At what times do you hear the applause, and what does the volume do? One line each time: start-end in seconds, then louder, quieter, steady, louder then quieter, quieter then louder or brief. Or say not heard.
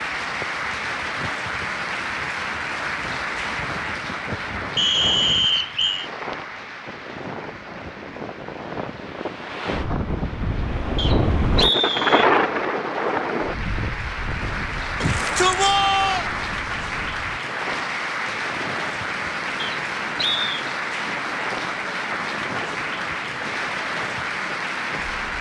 0.0-25.3 quieter then louder.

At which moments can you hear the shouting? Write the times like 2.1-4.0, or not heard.
15.0-16.3.